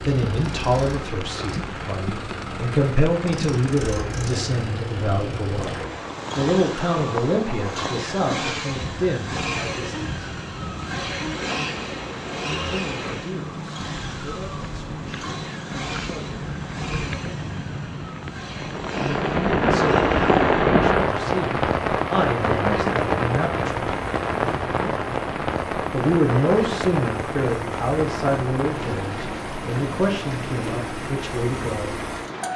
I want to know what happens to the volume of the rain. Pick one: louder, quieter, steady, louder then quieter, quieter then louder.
louder then quieter.